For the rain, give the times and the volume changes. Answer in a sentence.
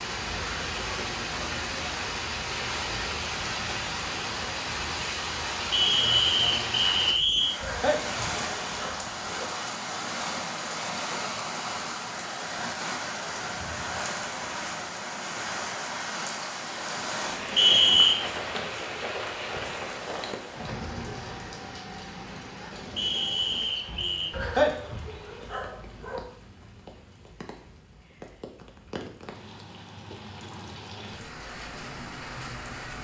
You can hear the rain from 0.0 to 32.9 s, getting quieter.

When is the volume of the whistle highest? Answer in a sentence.
The loudest moment of the whistle is at 18 seconds.